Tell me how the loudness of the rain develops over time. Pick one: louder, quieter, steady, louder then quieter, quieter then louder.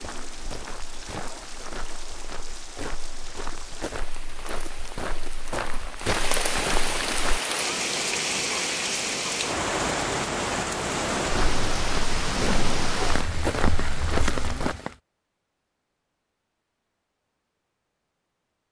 louder.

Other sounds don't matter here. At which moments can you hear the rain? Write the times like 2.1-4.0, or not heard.
0.0-14.9.